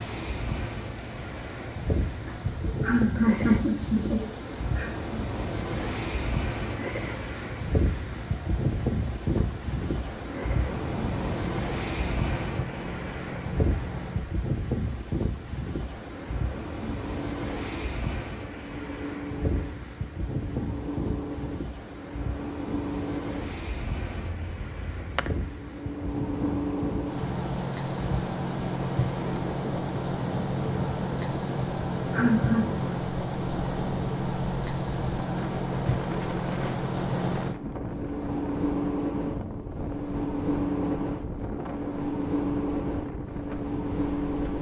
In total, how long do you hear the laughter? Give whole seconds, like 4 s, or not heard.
3 s.